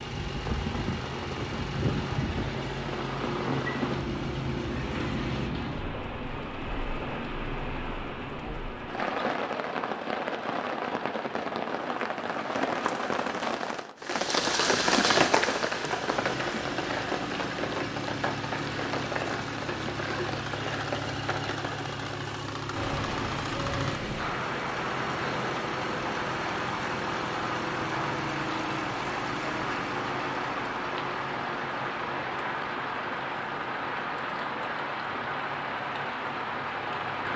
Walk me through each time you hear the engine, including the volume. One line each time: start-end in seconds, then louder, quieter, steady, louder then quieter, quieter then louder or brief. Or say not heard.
0.0-5.5 steady
16.1-37.3 quieter.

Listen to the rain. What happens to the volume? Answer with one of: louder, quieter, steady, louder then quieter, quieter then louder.
steady.